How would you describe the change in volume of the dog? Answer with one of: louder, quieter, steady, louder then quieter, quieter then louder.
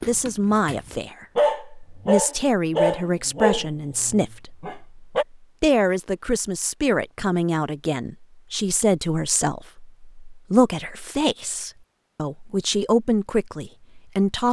louder then quieter.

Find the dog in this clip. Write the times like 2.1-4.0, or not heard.
0.0-5.2.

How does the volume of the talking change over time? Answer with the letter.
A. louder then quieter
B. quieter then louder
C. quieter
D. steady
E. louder
D.